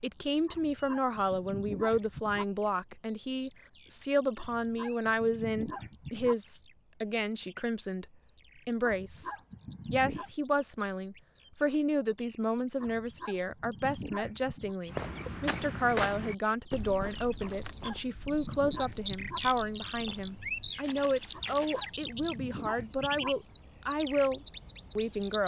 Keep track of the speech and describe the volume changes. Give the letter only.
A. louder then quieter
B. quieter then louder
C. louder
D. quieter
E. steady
E.